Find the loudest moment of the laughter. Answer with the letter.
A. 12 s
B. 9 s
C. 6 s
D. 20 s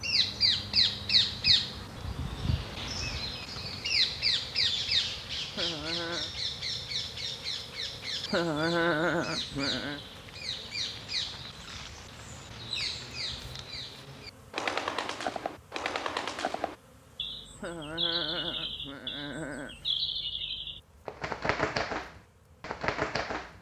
B.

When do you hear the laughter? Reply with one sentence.
You can hear the laughter from 5.5 to 6.3 s, from 8.2 to 10.0 s and from 17.6 to 19.8 s.